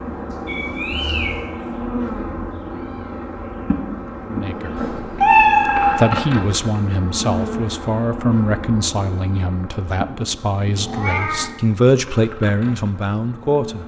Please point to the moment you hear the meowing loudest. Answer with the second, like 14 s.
5 s.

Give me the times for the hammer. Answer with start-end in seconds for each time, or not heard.
not heard.